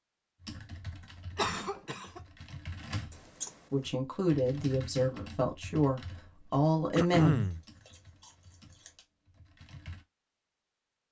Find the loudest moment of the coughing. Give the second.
7 s.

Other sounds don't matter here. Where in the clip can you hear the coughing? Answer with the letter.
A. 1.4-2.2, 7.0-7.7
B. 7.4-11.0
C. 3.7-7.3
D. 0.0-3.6
A.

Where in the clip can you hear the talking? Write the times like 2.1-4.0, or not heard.
3.7-7.3.